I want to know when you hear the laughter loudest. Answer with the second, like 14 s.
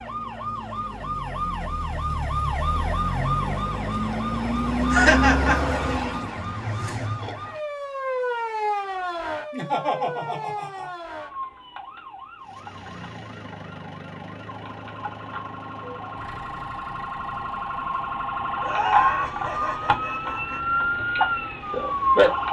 5 s.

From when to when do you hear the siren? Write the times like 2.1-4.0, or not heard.
0.0-22.4.